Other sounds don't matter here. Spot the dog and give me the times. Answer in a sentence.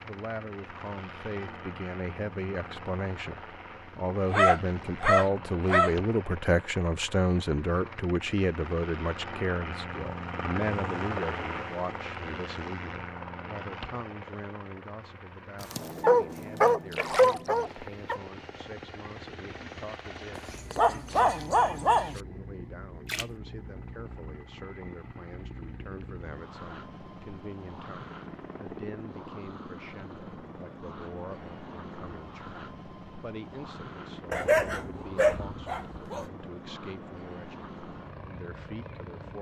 You can hear the dog from 4.2 to 5.9 s, from 15.6 to 18.2 s, from 20.4 to 22.2 s and from 34.3 to 36.2 s.